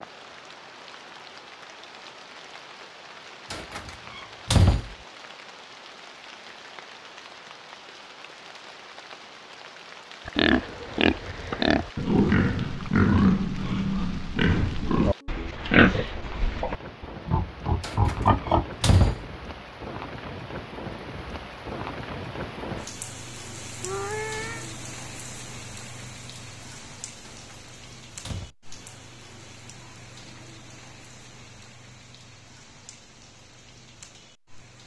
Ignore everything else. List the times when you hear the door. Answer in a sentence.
You can hear the door from 3.5 to 5.0 s, from 17.8 to 19.2 s and from 27.2 to 28.6 s.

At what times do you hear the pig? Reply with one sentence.
The pig can be heard from 10.2 to 19.1 s.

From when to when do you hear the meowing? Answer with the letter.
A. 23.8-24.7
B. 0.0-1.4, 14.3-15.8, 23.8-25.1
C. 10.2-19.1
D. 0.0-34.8
A.